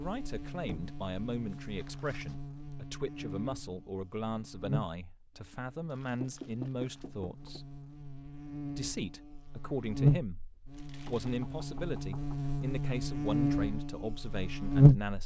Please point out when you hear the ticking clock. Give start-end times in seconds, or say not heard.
not heard.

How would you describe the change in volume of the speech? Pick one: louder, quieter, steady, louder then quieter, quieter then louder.
steady.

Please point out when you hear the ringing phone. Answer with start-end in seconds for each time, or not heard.
not heard.